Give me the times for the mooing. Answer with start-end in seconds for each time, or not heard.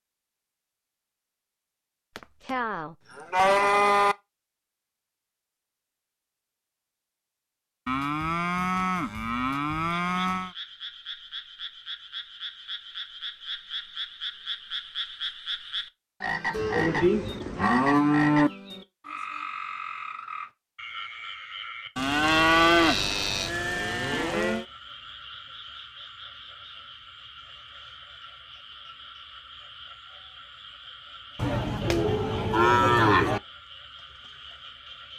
2.1-4.2, 7.8-10.5, 16.5-18.5, 21.9-24.6, 31.4-33.4.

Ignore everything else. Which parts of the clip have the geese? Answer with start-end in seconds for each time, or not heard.
not heard.